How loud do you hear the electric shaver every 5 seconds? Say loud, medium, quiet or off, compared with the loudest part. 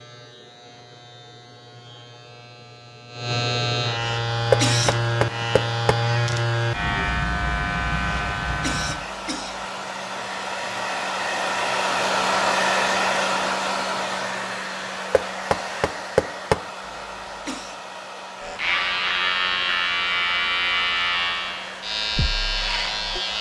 medium, loud, off, loud, loud.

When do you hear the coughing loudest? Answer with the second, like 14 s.
5 s.